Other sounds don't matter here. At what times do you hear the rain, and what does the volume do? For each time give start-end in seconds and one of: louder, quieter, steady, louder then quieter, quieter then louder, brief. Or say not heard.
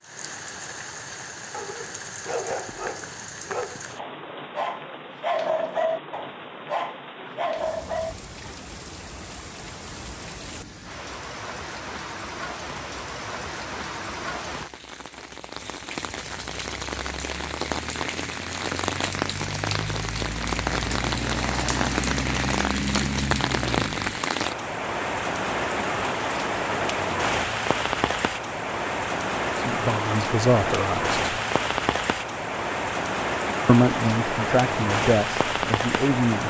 0.0-36.4 louder.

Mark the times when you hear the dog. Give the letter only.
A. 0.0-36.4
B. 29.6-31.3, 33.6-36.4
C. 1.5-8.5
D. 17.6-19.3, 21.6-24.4
C.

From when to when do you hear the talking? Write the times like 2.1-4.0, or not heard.
29.6-31.3, 33.6-36.4.